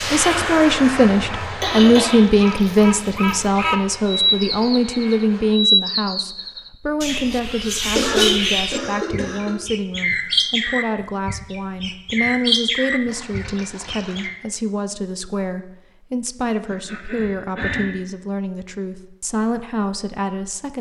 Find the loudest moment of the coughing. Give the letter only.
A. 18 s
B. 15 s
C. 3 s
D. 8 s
D.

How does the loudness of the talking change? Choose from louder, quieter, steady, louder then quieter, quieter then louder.
quieter.